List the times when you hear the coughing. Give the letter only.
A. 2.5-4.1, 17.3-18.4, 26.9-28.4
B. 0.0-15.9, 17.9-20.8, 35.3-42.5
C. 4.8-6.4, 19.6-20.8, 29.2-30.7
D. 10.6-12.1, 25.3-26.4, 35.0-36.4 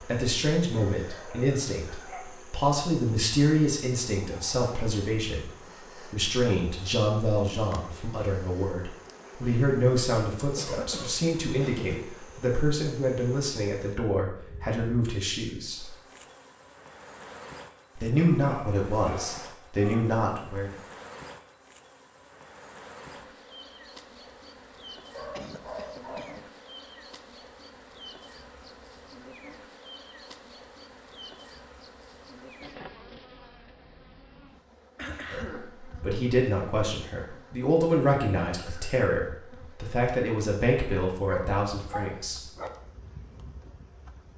D.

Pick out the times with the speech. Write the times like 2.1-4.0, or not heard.
0.0-15.9, 17.9-20.8, 35.3-42.5.